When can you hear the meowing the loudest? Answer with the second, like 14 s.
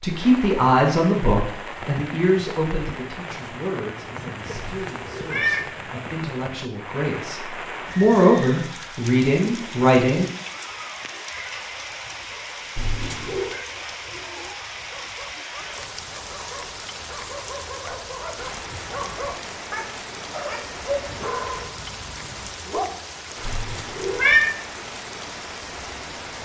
24 s.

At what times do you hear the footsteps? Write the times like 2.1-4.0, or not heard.
not heard.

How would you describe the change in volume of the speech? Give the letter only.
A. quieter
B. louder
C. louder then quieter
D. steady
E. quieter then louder
E.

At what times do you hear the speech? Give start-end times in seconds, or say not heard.
0.0-10.2.